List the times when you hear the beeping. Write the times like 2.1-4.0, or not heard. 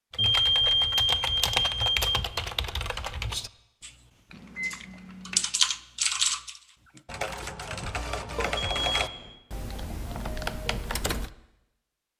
0.1-2.0, 4.3-5.5, 8.3-9.3.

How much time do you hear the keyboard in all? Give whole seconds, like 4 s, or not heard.
11 s.